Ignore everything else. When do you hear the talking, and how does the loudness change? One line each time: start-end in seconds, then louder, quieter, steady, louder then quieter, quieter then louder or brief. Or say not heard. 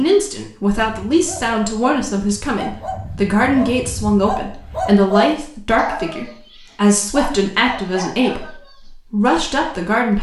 0.0-10.1 steady.